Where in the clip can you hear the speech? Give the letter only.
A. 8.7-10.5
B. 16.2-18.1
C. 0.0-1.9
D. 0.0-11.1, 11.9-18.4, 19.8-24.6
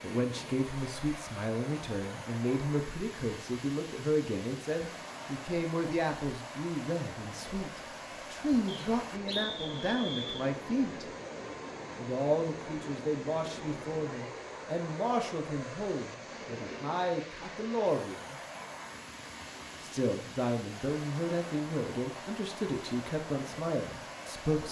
D.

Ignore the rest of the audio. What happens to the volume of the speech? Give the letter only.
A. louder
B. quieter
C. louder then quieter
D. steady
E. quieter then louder
D.